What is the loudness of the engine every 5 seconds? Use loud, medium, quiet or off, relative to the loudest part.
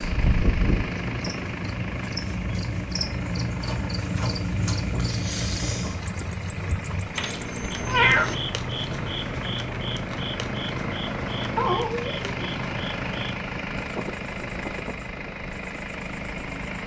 loud, medium, loud, loud.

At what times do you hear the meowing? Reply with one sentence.
The meowing can be heard from 0.1 to 0.8 s, from 7.2 to 8.3 s and from 11.6 to 12.3 s.